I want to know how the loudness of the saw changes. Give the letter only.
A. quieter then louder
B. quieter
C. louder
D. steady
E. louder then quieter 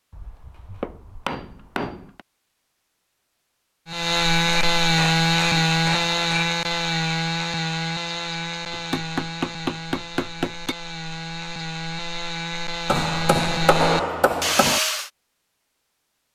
A.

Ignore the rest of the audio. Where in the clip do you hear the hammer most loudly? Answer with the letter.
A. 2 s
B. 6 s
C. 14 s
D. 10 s
C.